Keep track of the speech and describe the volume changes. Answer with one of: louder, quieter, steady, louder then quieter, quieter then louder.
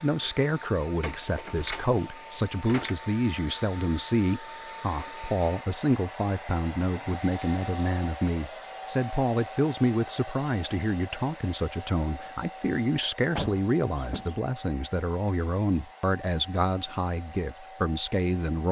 steady.